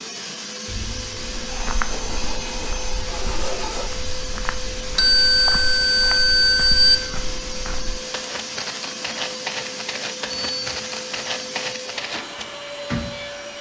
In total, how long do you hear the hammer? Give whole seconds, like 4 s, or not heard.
not heard.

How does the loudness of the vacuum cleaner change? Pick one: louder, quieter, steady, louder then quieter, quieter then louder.
steady.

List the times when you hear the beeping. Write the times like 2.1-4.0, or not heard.
0.7-3.0, 5.0-7.0, 10.3-10.8.